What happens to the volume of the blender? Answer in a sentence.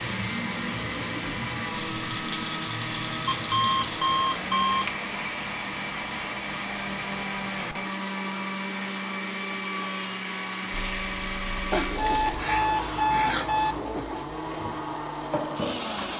The loudness of the blender stays about the same.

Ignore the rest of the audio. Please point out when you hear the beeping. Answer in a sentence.
You can hear the beeping from 3.2 to 4.9 s and from 11.7 to 13.8 s.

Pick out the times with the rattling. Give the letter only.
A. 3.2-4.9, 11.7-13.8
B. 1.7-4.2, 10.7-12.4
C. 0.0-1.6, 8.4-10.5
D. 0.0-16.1
B.